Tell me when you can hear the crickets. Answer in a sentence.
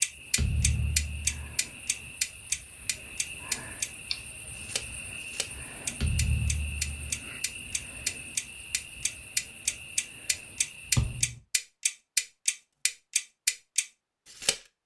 You can hear the crickets from 0.0 to 11.2 s.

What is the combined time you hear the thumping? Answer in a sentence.
The thumping can be heard for 3 seconds in total.